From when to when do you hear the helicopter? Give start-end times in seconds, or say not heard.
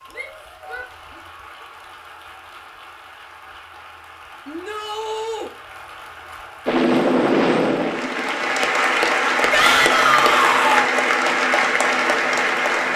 6.7-12.9.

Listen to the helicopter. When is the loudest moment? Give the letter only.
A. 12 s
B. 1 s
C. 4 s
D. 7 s
D.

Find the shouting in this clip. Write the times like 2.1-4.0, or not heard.
0.1-1.2, 4.5-5.5, 9.5-10.8.